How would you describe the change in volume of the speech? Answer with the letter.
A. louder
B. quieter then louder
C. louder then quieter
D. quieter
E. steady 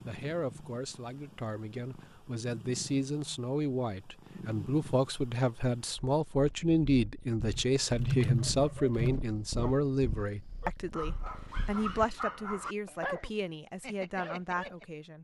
C.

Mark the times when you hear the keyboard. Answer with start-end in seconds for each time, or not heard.
7.4-9.2.